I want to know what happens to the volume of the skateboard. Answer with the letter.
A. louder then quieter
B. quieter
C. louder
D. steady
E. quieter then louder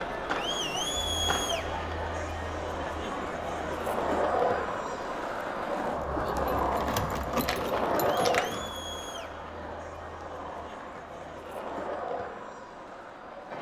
A.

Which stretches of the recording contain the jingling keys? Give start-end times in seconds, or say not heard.
6.2-8.8.